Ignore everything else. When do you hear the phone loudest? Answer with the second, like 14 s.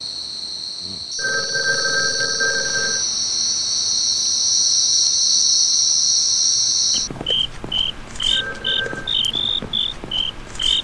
2 s.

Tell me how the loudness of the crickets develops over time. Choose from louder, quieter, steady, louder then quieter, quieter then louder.
louder then quieter.